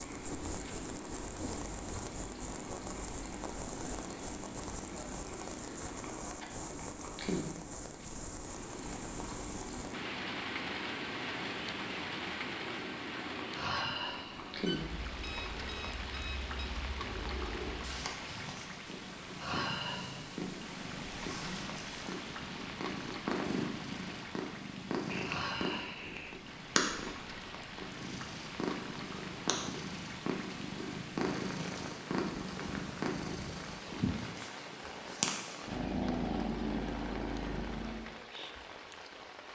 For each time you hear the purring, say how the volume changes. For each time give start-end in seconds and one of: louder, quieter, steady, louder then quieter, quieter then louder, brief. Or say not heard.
0.0-38.1 louder.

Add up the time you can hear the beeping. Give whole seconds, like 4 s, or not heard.
3 s.